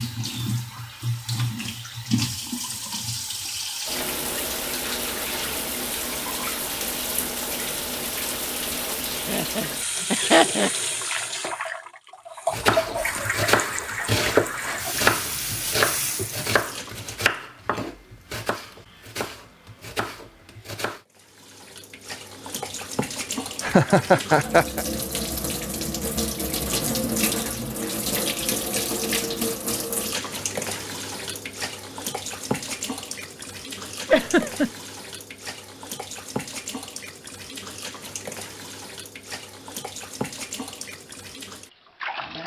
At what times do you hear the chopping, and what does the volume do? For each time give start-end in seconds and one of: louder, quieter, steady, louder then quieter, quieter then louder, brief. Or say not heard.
12.5-21.0 quieter.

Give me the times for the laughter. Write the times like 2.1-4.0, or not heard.
9.2-10.7, 23.6-24.9, 34.0-34.7.